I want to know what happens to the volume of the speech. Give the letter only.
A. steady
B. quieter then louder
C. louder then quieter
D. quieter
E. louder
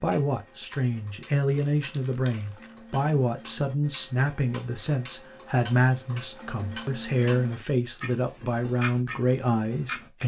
A.